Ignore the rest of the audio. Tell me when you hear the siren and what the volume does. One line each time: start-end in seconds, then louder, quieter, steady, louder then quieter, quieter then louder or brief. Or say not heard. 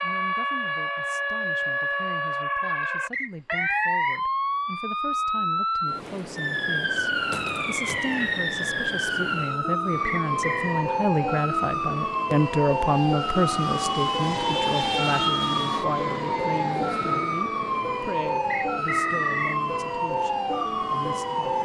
0.0-21.6 steady.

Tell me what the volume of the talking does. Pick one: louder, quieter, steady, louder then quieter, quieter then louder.
louder then quieter.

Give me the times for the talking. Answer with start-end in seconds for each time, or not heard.
0.0-21.6.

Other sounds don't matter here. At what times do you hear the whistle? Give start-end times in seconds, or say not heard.
3.1-4.2, 10.1-10.9, 18.5-19.6.